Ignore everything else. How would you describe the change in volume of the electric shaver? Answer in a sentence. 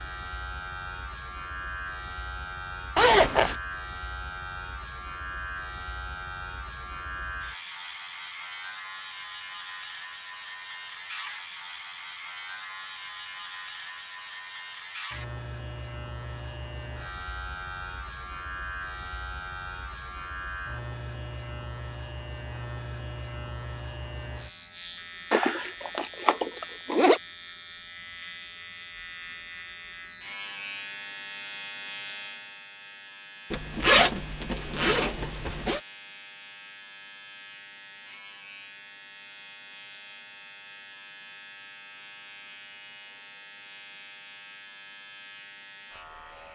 The volume of the electric shaver goes down.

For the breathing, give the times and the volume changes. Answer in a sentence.
You can't hear the breathing here.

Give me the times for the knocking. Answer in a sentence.
The knocking can't be heard in this clip.